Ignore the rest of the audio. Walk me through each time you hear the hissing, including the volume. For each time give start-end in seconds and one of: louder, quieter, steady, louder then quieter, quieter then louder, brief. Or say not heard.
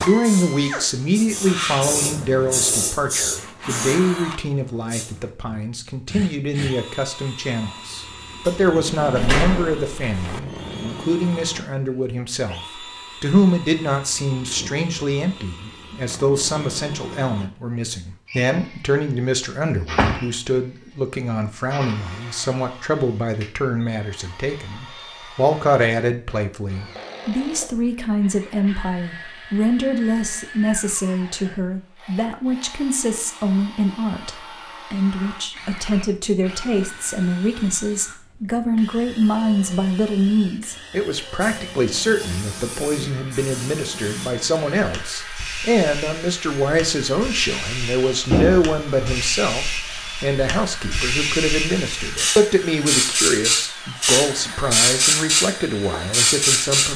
0.1-5.2 louder then quieter
41.4-56.9 louder.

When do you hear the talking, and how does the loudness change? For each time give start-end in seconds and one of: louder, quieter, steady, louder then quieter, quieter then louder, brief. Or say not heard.
0.0-56.9 steady.